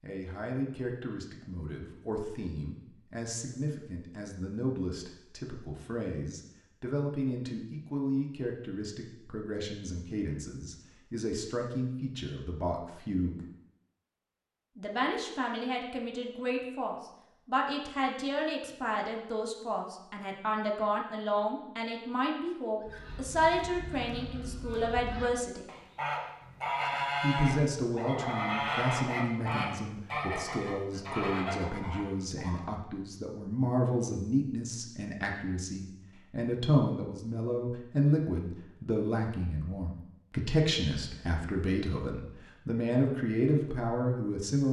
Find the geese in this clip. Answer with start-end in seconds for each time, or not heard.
22.8-32.6.